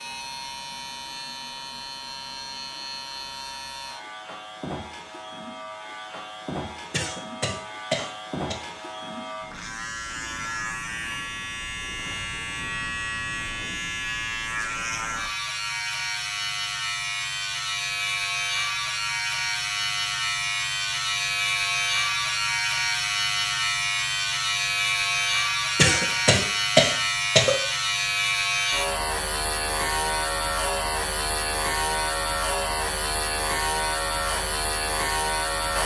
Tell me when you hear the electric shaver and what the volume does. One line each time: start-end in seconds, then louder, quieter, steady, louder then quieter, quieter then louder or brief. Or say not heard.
0.0-35.8 louder.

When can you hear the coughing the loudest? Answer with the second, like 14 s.
27 s.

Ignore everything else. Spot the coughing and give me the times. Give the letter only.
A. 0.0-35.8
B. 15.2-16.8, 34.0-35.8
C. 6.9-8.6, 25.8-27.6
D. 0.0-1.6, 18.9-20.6
C.